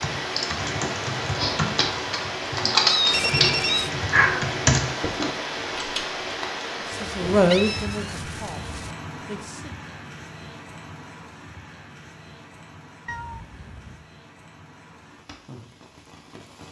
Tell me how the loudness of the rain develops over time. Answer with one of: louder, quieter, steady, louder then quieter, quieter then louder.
quieter.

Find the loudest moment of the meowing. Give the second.
3 s.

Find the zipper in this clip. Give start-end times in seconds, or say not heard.
not heard.